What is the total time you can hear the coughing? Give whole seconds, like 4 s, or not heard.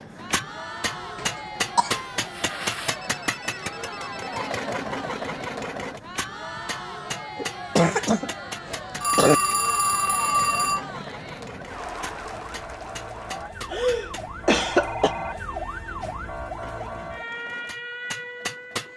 4 s.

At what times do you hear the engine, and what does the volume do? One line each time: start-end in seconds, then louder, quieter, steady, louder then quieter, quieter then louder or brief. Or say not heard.
0.0-14.2 quieter
16.6-18.9 brief.